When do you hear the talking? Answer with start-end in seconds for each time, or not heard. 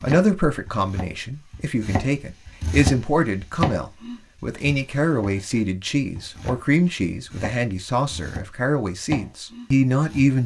0.0-10.4.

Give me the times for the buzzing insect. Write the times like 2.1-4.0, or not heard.
not heard.